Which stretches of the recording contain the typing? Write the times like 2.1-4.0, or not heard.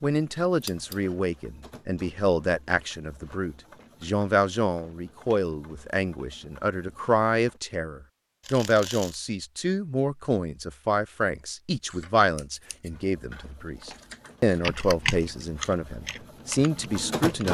14.6-17.4.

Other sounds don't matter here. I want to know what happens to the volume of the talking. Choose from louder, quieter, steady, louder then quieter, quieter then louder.
steady.